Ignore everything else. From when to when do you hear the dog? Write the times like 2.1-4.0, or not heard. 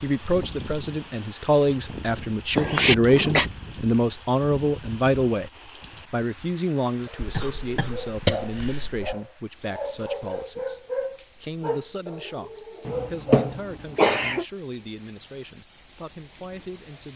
7.0-13.6.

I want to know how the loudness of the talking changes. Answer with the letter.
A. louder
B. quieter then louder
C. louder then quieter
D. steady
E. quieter
E.